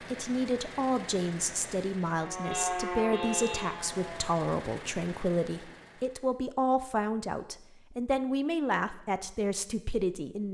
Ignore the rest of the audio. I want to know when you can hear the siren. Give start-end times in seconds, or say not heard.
2.1-4.3.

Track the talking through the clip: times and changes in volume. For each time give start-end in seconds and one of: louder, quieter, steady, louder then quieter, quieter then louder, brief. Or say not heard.
0.1-10.4 steady.